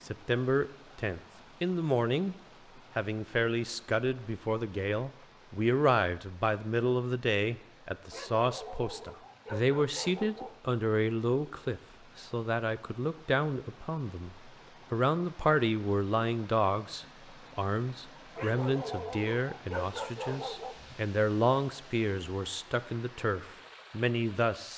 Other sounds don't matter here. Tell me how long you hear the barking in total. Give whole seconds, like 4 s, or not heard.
5 s.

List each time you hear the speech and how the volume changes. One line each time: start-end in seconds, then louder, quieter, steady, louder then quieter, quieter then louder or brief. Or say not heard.
0.0-2.4 brief
3.0-24.7 steady.